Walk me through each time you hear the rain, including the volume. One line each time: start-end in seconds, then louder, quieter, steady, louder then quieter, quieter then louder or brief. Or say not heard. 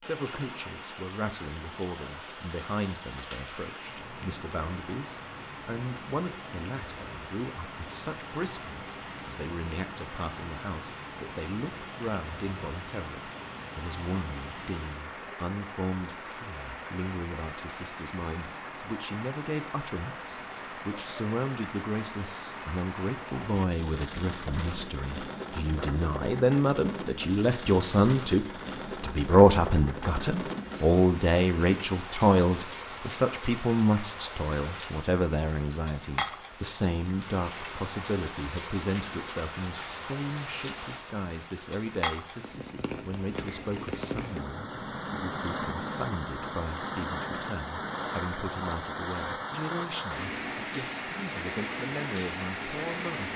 0.0-53.3 louder.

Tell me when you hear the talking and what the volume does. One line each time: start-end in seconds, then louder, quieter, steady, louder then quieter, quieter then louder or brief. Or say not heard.
0.0-53.3 louder then quieter.